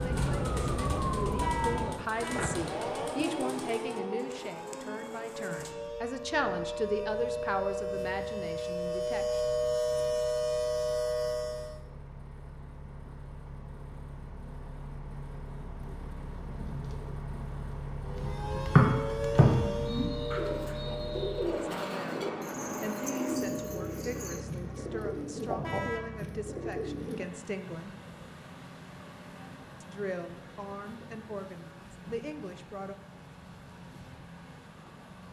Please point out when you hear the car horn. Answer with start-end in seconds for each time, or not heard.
1.4-2.6, 25.6-26.2.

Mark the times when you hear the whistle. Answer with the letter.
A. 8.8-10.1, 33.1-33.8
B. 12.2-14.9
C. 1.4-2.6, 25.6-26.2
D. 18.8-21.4
D.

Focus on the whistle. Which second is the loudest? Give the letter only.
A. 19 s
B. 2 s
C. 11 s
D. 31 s
A.